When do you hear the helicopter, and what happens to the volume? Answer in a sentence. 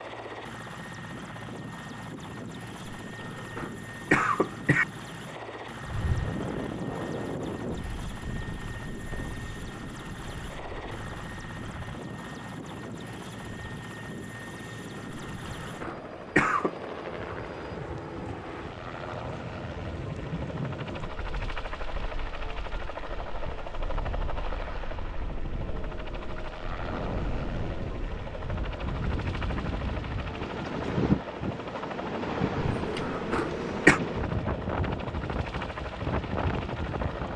You can hear the helicopter from 0.0 to 37.3 s, at a steady volume.